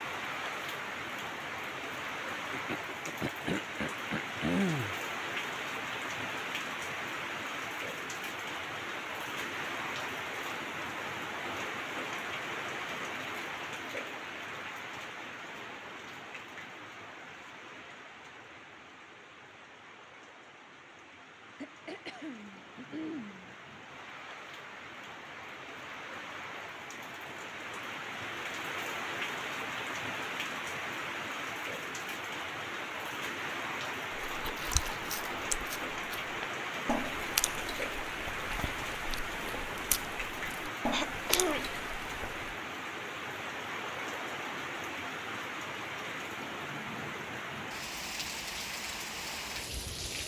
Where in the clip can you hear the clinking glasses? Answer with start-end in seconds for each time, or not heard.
not heard.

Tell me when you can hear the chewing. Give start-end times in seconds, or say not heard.
34.2-42.5.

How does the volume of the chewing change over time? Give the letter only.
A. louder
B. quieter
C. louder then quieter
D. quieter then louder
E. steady
D.